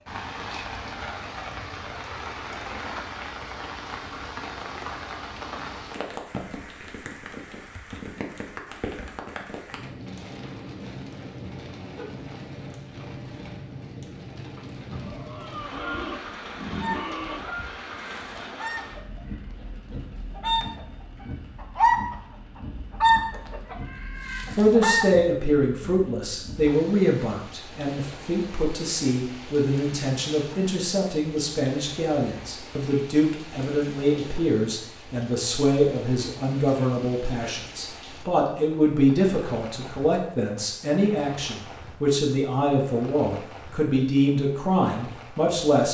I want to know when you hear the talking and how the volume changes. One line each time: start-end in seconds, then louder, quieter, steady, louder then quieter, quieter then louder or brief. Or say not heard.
24.5-45.8 steady.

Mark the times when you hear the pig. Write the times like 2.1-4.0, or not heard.
14.9-17.5.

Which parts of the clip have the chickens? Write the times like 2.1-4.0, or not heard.
16.8-20.9, 21.6-22.1, 23.0-25.2.